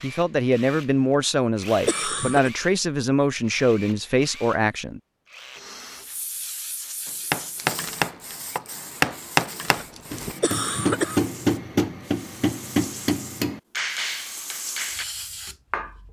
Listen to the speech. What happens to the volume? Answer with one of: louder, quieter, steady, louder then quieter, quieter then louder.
steady.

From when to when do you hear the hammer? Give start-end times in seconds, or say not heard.
7.0-15.1.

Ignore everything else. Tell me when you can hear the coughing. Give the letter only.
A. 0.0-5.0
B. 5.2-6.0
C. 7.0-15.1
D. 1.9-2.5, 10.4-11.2
D.